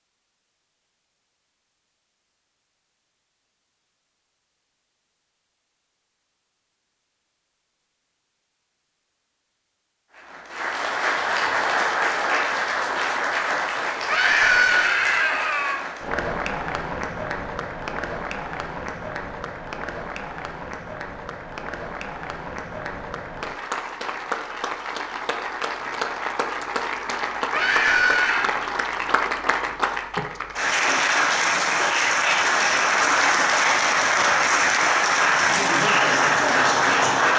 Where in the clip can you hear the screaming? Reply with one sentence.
The screaming can be heard from 14.1 to 15.8 s and from 27.5 to 28.5 s.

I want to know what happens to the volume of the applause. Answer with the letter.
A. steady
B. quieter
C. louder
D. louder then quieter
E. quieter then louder
E.